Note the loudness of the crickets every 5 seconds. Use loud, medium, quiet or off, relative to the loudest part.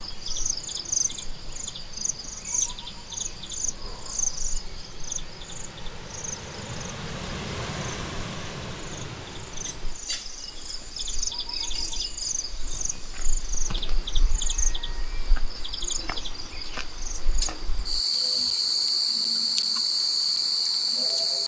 medium, quiet, medium, loud, loud.